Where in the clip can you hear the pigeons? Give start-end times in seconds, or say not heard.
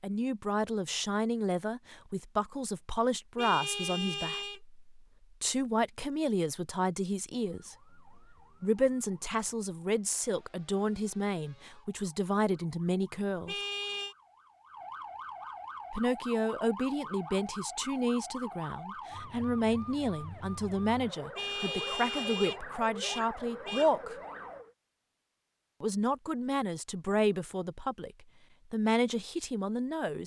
not heard.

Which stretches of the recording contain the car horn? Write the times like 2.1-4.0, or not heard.
3.4-4.6, 13.4-14.2, 21.4-23.9.